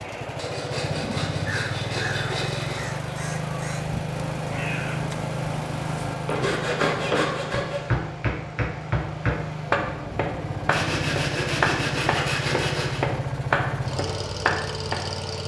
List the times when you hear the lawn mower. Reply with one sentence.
The lawn mower can be heard from 0.0 to 15.4 s.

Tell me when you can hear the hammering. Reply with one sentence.
The hammering can be heard from 6.2 to 15.0 s.